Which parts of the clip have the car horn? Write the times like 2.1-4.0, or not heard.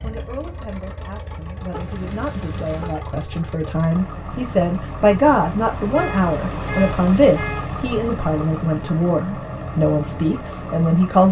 1.7-3.0, 5.9-7.8.